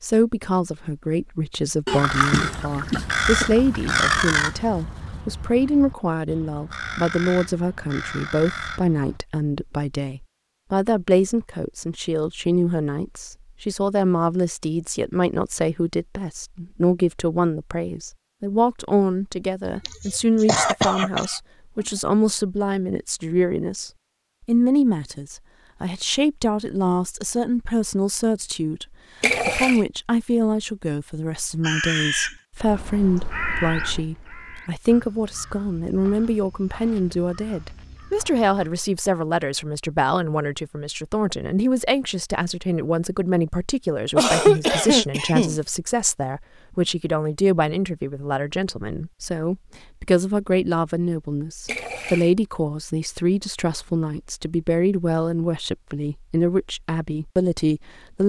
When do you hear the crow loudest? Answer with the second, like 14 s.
4 s.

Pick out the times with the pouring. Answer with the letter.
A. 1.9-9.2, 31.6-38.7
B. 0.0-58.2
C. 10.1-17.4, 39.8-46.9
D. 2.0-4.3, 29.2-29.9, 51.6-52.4
D.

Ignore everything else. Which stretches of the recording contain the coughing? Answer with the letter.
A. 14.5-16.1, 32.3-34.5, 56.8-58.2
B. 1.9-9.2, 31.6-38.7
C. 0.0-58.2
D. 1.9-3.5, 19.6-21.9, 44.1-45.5
D.